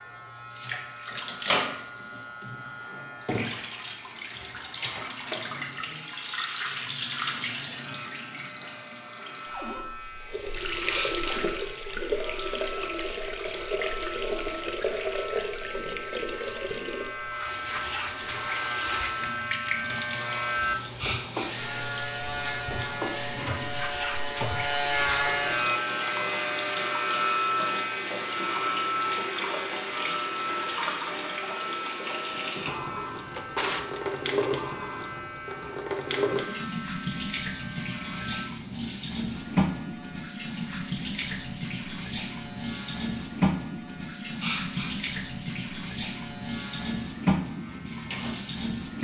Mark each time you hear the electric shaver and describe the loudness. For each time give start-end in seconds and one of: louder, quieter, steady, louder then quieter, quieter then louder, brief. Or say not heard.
0.0-49.0 louder then quieter.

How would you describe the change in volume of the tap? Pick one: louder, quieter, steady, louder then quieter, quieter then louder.
steady.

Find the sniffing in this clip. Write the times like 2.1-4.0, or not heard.
10.8-11.4, 20.9-21.5, 44.4-44.9.